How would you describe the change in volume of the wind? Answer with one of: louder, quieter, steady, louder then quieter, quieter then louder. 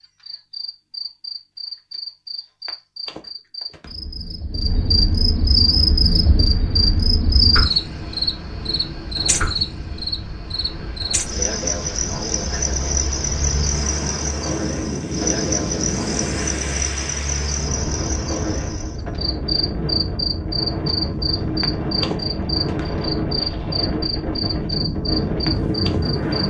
louder.